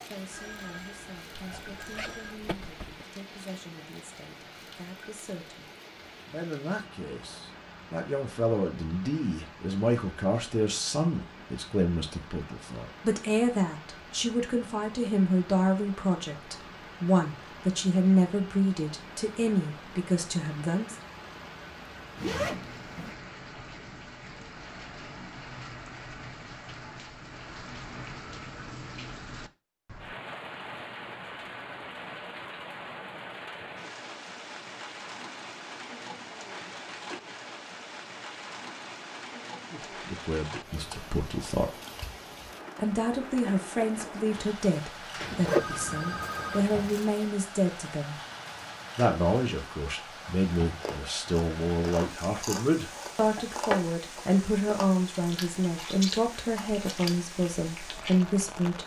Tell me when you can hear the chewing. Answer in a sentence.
The chewing can be heard from 50.8 to 58.4 s.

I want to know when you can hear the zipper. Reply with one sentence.
You can hear the zipper from 1.4 to 3.0 s, from 22.1 to 23.1 s and from 45.4 to 47.2 s.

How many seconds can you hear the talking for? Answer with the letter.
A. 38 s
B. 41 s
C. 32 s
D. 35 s
A.